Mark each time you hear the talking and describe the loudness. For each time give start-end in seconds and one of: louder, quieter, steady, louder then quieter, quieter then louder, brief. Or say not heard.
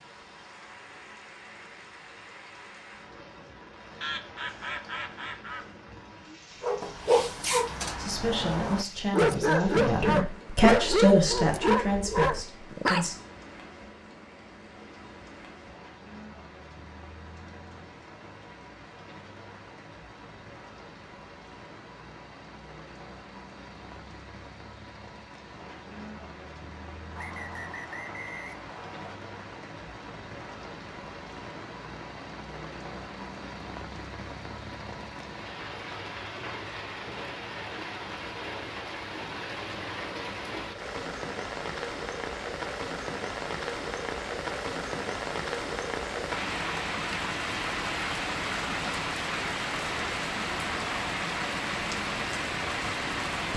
8.0-13.2 louder then quieter.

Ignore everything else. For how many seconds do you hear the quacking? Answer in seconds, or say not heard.
2 s.